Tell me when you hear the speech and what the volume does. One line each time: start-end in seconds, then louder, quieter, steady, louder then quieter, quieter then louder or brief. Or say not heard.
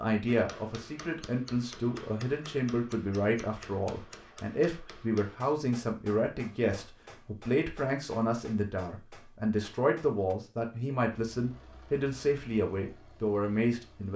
0.0-14.1 steady.